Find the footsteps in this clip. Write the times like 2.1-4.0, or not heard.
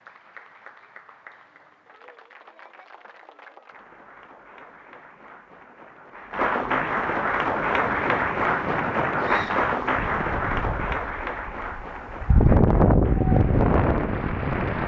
not heard.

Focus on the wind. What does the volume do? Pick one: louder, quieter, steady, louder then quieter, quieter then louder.
louder.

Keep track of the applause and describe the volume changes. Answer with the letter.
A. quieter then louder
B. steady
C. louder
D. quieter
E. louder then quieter
E.